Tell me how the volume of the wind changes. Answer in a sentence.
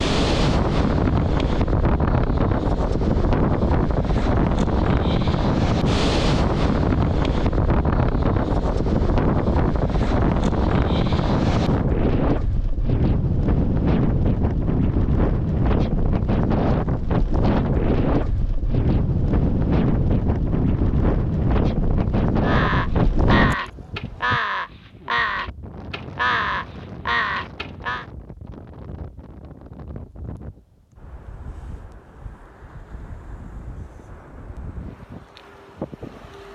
The loudness of the wind goes down.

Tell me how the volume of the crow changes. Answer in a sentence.
The loudness of the crow stays about the same.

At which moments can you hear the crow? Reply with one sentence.
You can hear the crow from 22.4 to 28.1 s.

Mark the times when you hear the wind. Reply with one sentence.
You can hear the wind from 0.0 to 36.5 s.